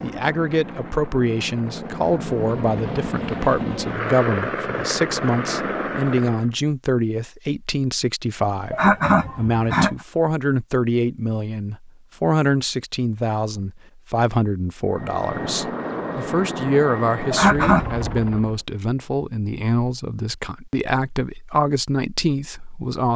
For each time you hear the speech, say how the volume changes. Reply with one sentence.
The speech can be heard from 0.0 to 23.1 s, at a steady volume.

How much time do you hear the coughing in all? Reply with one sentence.
You can hear the coughing for 2 seconds altogether.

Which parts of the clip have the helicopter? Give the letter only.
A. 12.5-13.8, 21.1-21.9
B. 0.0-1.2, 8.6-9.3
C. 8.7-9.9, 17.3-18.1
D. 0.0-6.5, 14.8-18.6
D.